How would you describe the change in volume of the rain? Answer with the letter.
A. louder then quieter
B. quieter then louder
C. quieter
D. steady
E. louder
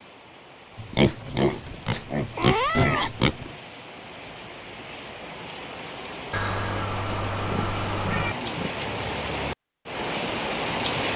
E.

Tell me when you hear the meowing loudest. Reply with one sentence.
The volume of the meowing peaks at 3 seconds.